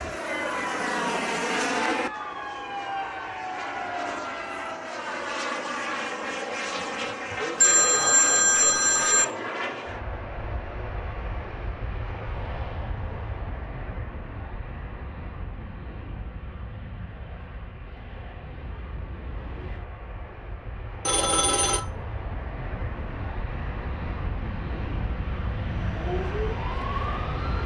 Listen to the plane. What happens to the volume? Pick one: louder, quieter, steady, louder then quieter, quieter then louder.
quieter then louder.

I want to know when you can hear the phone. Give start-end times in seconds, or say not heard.
7.6-9.2, 21.1-21.8.